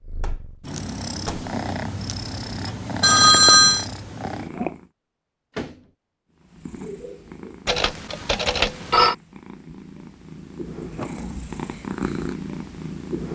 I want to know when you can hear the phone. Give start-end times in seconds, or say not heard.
3.0-3.9, 7.7-9.2.